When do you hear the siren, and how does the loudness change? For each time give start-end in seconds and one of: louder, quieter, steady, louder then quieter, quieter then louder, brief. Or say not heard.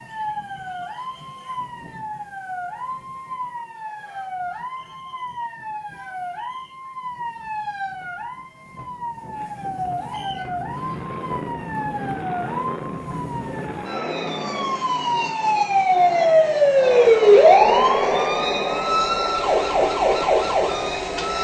0.0-21.3 louder.